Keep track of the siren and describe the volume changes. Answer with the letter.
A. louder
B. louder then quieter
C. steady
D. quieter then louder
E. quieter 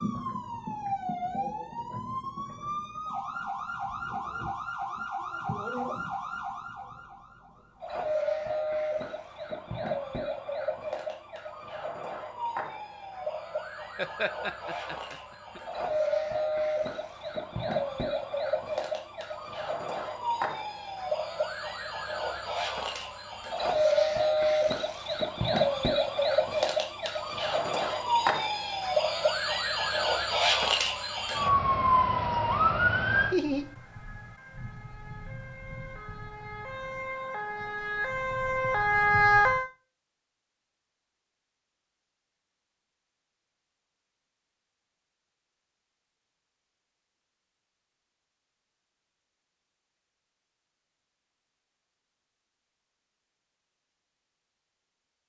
A.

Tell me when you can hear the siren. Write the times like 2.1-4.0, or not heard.
0.0-39.6.